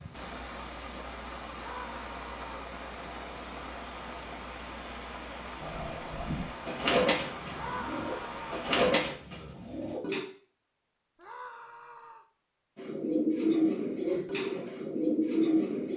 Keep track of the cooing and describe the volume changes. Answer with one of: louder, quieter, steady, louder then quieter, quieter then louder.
quieter then louder.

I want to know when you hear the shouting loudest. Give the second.
8 s.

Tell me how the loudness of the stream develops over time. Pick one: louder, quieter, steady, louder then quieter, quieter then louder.
steady.